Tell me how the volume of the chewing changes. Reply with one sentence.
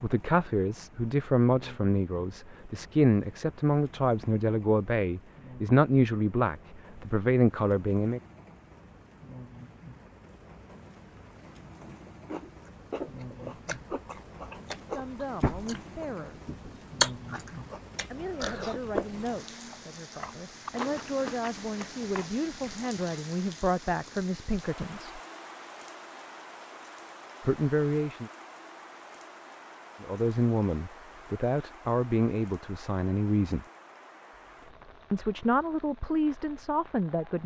The loudness of the chewing goes up, then down.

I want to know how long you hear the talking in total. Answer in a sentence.
You can hear the talking for 24 seconds altogether.